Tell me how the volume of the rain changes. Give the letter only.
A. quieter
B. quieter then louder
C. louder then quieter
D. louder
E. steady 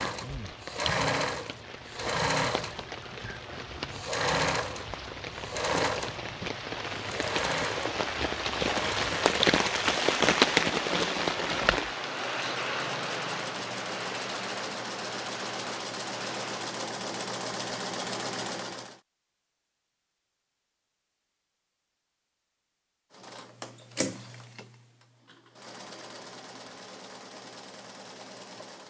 C.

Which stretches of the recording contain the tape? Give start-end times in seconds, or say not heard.
not heard.